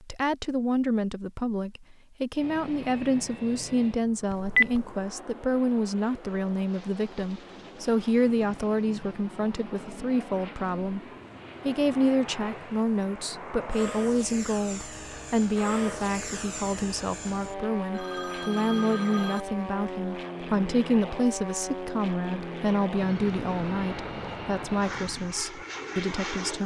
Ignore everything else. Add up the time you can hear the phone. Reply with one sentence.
The phone can be heard for 2 seconds in total.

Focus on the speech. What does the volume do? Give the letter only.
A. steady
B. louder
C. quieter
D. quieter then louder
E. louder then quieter
A.